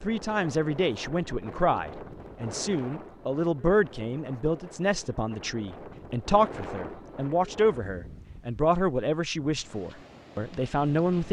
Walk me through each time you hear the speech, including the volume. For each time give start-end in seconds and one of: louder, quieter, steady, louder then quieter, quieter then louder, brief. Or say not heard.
0.0-11.2 steady.